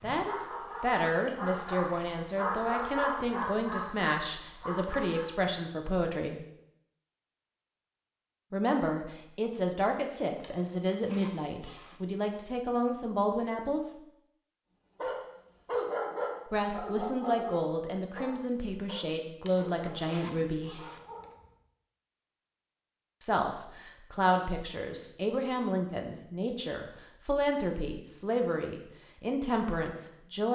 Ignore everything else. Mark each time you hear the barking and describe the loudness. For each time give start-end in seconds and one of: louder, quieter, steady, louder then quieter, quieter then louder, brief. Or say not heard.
0.0-5.3 louder then quieter
14.9-21.6 quieter.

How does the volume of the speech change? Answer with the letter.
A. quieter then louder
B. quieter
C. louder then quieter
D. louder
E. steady
E.